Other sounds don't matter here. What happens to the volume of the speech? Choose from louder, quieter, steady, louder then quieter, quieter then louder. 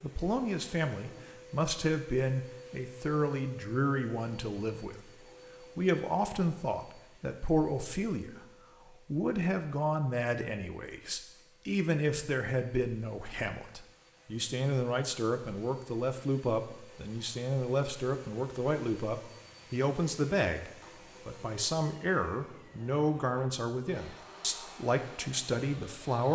steady.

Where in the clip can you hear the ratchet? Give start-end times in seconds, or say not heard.
not heard.